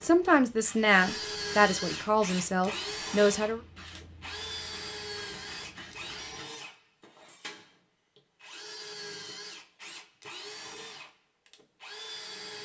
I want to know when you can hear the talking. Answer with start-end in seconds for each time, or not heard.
0.0-3.6.